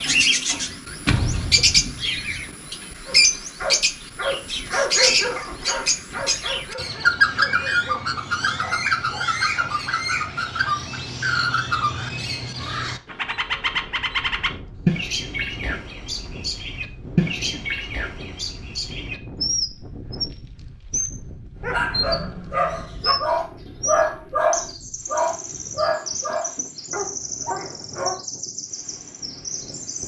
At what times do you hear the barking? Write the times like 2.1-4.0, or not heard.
3.0-9.8, 21.6-28.2.